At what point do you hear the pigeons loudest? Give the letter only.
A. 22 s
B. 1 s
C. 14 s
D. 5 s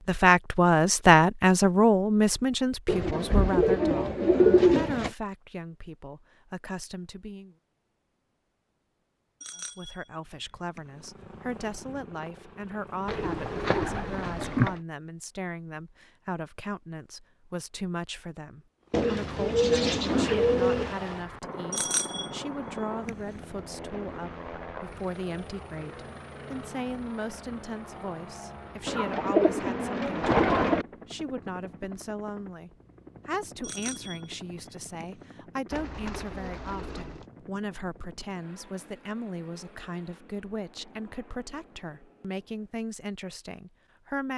D.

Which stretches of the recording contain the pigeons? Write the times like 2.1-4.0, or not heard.
2.9-5.1, 13.1-14.8, 18.9-20.9, 28.9-30.9, 35.7-37.2.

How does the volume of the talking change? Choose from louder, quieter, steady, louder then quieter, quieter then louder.
quieter.